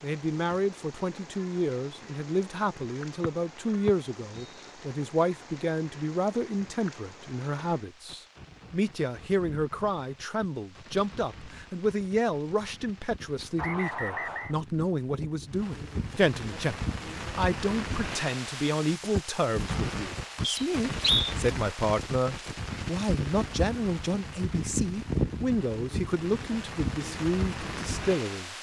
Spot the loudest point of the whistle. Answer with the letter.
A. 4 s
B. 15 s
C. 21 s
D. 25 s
C.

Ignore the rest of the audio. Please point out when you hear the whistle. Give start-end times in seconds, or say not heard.
3.2-4.7, 13.6-14.6, 20.4-21.4.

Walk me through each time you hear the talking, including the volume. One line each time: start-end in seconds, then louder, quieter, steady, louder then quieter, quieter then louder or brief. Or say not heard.
0.0-28.5 steady.